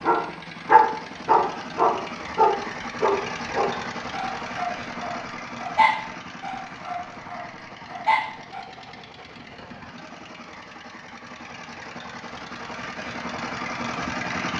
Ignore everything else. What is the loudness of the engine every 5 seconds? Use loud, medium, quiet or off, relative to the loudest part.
loud, medium, loud.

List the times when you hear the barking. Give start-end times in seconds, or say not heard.
0.0-8.7.